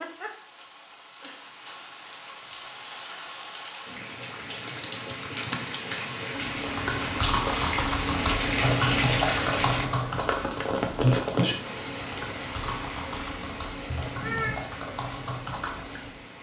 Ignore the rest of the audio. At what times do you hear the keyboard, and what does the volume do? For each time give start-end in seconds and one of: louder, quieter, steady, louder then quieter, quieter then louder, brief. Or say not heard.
4.5-16.1 louder then quieter.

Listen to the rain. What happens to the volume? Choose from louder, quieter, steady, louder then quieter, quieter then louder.
louder then quieter.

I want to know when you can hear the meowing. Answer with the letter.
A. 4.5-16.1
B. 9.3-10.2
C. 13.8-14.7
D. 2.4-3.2
C.